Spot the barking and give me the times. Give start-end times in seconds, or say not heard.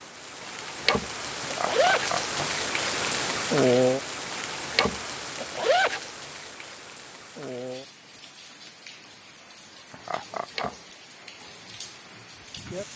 not heard.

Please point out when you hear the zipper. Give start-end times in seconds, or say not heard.
0.4-2.1, 4.5-6.0, 10.3-10.8.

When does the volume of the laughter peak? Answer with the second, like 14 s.
2 s.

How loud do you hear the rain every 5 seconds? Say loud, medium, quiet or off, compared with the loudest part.
loud, quiet, quiet.